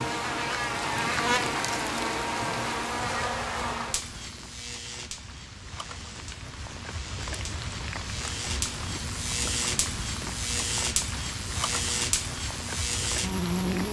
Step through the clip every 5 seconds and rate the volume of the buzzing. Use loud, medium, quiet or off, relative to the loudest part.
loud, medium, loud.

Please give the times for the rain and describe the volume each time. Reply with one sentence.
The rain can be heard from 0.0 to 13.8 s, getting quieter then louder.